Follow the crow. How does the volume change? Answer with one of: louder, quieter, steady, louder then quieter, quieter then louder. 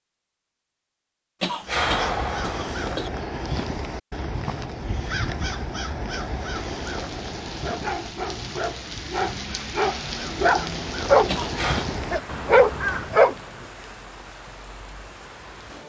quieter then louder.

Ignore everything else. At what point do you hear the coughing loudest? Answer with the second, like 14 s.
2 s.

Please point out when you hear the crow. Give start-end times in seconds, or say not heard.
1.6-13.2.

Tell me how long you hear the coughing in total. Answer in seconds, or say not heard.
2 s.